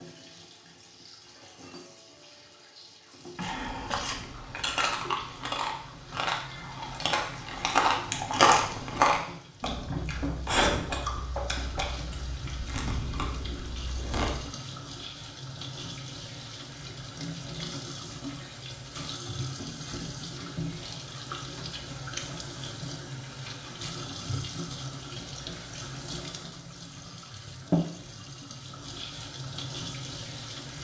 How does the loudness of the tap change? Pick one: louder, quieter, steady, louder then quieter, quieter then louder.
louder.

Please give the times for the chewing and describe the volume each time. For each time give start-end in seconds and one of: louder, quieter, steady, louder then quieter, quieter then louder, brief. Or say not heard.
3.4-14.5 louder then quieter.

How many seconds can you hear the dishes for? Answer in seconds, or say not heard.
not heard.